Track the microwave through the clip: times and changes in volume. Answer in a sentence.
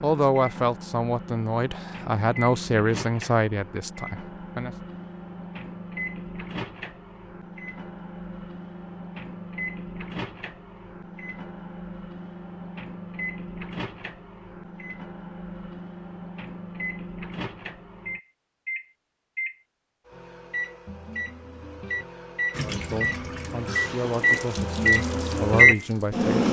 The microwave can be heard from 0.0 to 26.4 s, getting louder.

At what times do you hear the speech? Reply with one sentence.
The speech can be heard from 0.0 to 4.7 s and from 22.6 to 26.4 s.